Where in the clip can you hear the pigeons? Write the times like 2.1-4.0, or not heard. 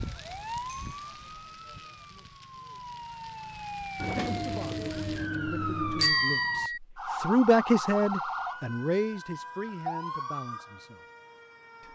4.0-6.2.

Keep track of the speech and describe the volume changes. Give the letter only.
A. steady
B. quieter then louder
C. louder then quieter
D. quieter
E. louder
C.